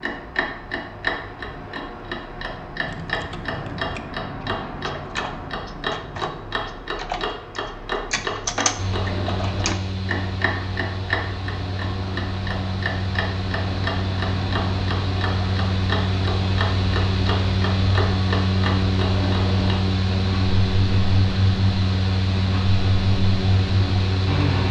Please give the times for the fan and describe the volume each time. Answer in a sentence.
The fan can be heard from 8.8 to 24.6 s, getting louder.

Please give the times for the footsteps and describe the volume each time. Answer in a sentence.
You can't hear the footsteps here.